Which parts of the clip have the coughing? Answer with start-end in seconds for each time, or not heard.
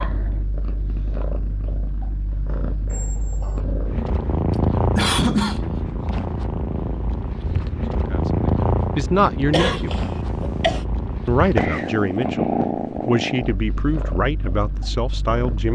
5.0-5.6, 9.5-10.8.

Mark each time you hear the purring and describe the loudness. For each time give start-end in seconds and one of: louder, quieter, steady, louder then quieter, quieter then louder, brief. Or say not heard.
0.0-15.7 louder.